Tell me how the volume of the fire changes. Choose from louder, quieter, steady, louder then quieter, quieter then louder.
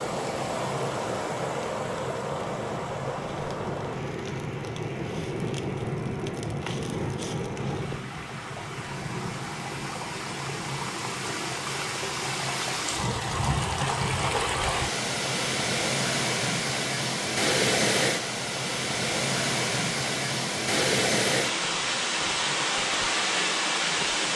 louder then quieter.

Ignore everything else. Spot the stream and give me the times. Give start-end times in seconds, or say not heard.
0.0-24.3.